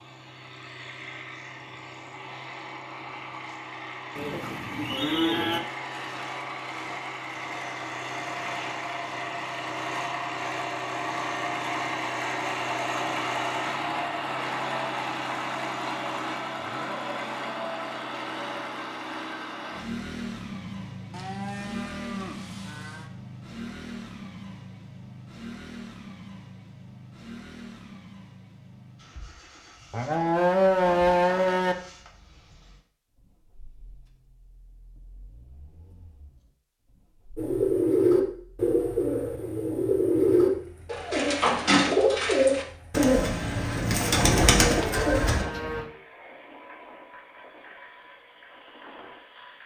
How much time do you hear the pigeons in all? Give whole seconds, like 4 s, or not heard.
8 s.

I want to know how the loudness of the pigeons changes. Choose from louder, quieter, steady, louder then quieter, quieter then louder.
steady.